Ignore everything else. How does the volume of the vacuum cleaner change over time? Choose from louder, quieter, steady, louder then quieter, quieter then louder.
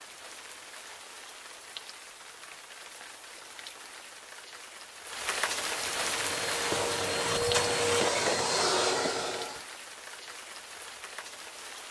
louder.